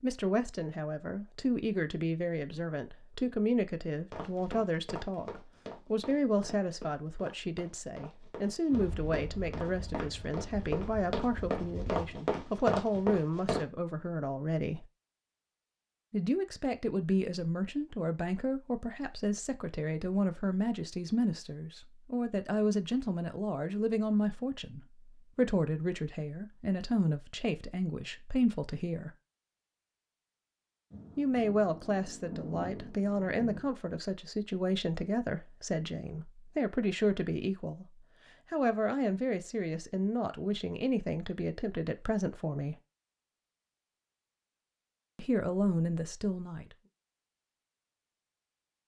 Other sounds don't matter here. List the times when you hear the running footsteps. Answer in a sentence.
The running footsteps can be heard from 4.1 to 13.7 s.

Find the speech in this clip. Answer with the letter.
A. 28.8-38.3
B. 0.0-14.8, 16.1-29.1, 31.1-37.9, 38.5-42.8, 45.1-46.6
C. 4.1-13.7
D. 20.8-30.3
B.